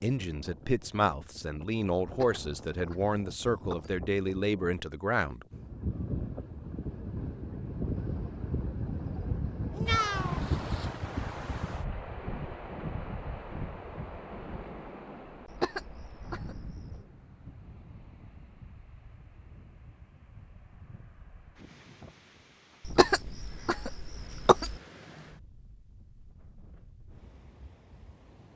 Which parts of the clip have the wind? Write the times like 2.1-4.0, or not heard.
0.0-28.5.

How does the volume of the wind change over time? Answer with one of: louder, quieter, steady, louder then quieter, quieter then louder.
louder then quieter.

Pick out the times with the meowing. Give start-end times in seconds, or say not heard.
9.7-10.4.